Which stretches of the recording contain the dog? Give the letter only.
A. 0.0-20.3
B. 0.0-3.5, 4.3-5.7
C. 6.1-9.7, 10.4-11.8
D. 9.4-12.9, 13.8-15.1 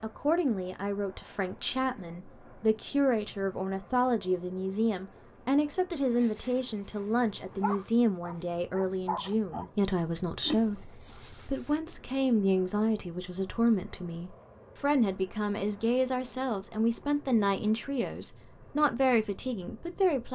C.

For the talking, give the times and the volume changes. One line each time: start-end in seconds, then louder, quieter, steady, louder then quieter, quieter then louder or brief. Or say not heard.
0.0-20.3 steady.